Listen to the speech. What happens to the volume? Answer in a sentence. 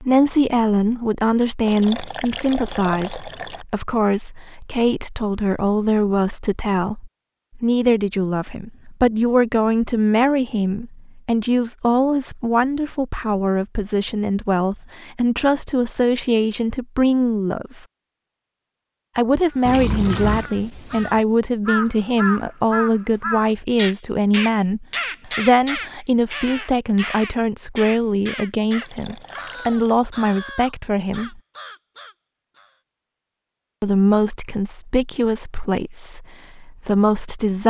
The volume of the speech stays about the same.